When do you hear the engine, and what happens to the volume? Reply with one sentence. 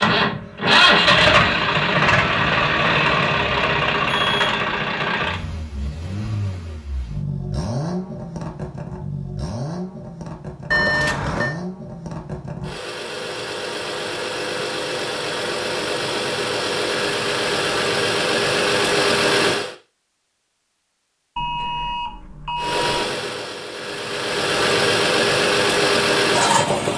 The engine can be heard from 0.0 to 19.8 s, getting quieter then louder; and from 22.6 to 26.9 s, getting louder.